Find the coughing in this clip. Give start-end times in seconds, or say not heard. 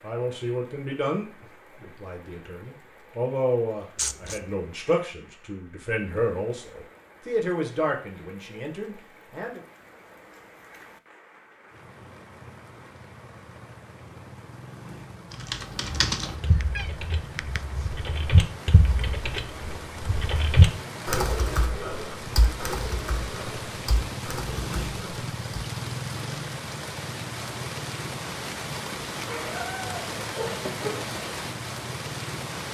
not heard.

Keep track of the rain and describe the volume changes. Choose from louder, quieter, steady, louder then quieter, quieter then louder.
louder.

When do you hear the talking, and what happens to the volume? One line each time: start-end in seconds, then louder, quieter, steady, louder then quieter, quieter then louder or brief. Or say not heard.
0.0-9.6 steady.